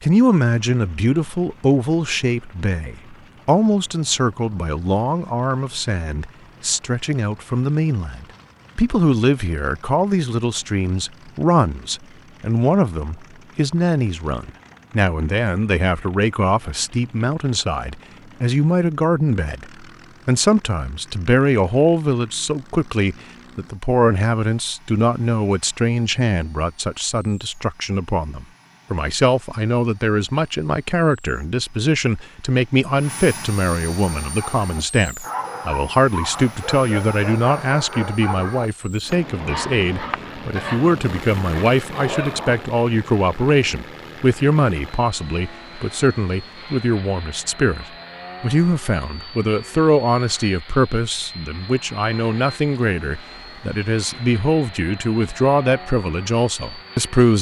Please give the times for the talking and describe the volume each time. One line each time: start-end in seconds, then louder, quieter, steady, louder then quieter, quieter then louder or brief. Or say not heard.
0.0-57.3 steady.